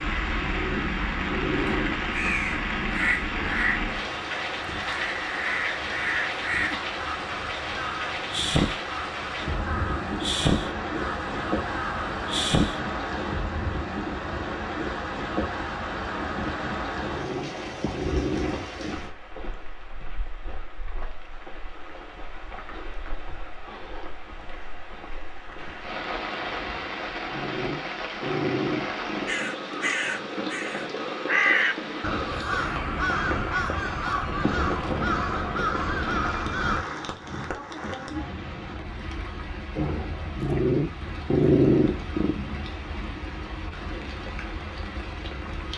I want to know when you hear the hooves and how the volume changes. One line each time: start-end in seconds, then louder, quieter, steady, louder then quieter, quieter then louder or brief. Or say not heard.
not heard.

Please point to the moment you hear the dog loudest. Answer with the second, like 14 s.
42 s.